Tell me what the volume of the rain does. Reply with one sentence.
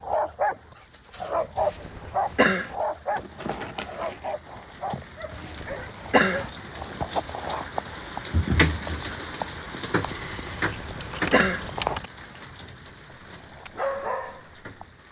The volume of the rain goes up, then down.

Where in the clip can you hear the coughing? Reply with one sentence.
The coughing can be heard from 1.6 to 2.8 s, from 5.3 to 6.5 s and from 10.6 to 11.7 s.